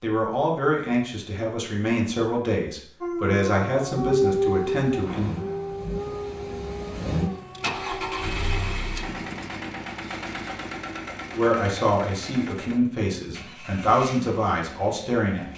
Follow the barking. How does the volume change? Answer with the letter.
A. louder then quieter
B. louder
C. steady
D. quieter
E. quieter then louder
D.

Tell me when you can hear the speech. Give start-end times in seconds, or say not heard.
0.0-5.3, 11.3-15.5.